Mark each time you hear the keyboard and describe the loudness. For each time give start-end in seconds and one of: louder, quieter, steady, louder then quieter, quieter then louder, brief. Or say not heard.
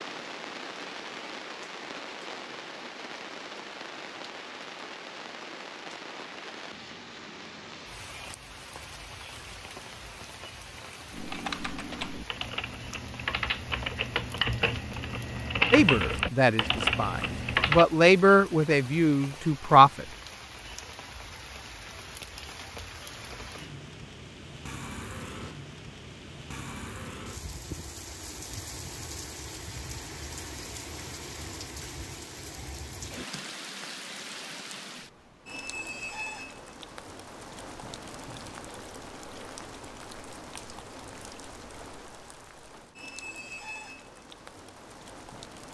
11.1-17.9 louder.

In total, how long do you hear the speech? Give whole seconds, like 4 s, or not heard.
4 s.